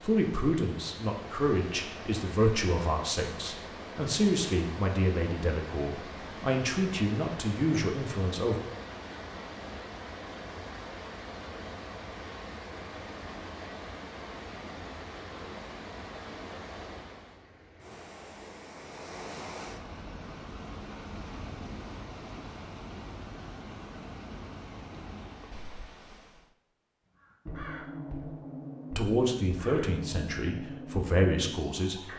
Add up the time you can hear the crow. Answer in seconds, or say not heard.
5 s.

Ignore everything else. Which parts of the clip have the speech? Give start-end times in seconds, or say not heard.
0.0-8.6, 28.9-32.1.